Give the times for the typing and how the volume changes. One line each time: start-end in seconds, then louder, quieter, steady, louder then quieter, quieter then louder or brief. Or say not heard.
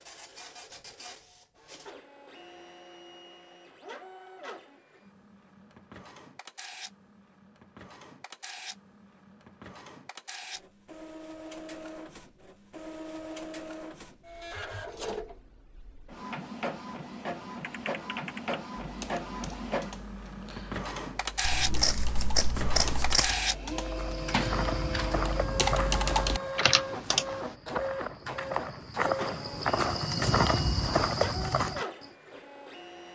17.4-27.6 quieter then louder.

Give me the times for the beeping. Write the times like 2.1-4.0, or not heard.
not heard.